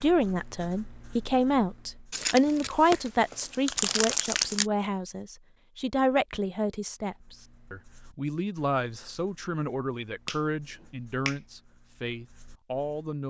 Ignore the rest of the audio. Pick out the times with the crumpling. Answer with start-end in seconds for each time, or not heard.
2.1-4.7.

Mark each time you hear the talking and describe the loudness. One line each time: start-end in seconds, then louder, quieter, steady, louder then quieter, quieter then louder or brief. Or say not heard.
0.0-13.2 quieter.